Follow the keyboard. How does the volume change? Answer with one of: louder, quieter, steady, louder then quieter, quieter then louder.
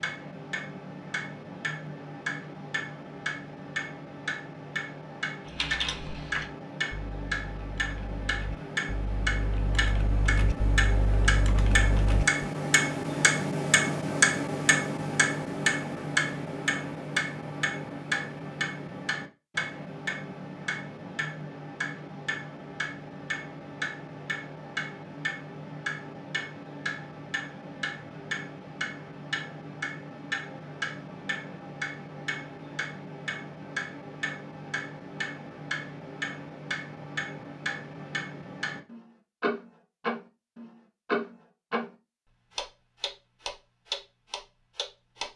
quieter then louder.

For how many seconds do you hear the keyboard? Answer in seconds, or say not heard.
7 s.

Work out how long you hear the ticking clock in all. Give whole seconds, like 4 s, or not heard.
45 s.